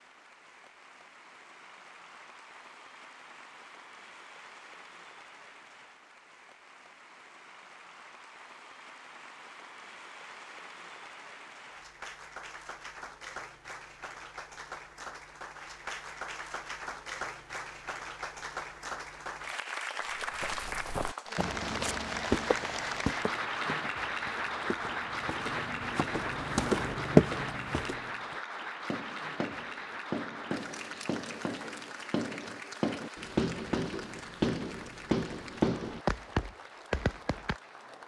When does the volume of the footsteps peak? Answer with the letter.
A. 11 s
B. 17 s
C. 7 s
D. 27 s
D.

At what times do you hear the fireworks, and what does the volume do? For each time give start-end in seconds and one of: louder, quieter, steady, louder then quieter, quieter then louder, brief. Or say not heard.
28.9-37.5 louder.